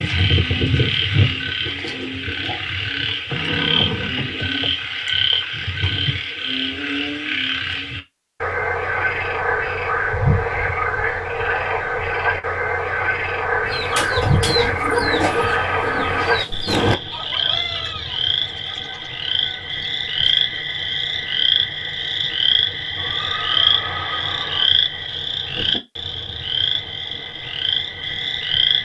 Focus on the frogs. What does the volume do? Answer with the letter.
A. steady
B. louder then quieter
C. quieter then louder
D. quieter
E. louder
A.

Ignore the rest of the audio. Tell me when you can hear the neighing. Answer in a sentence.
You can hear the neighing from 3.3 to 5.1 s, from 15.2 to 16.4 s and from 22.9 to 24.6 s.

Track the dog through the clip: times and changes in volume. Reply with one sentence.
The dog can't be heard in this clip.